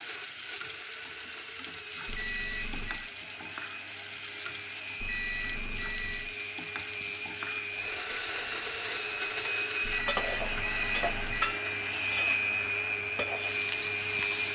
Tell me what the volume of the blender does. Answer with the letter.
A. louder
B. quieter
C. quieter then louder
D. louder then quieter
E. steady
A.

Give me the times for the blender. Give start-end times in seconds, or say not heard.
0.0-14.5.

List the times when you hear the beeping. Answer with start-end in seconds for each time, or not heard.
2.0-3.1, 5.0-6.3, 9.8-11.6.